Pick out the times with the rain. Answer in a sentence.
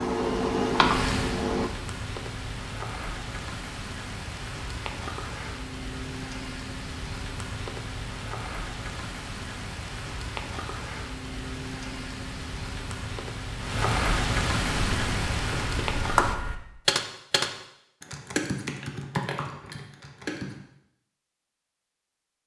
The rain can be heard from 0.0 to 16.4 s.